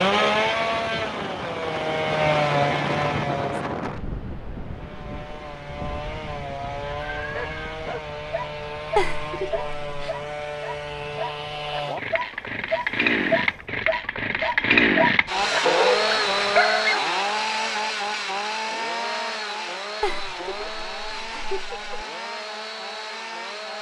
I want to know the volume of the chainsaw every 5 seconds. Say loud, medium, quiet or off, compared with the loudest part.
loud, medium, loud, loud, medium.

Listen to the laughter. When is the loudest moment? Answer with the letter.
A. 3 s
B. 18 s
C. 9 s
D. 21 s
C.